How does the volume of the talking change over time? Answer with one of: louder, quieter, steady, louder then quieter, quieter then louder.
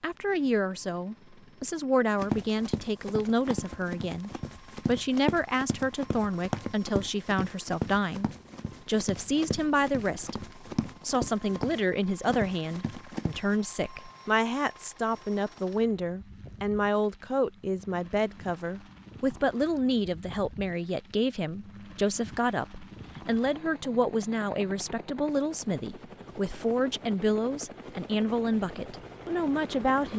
steady.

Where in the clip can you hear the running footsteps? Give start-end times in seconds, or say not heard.
2.1-13.6.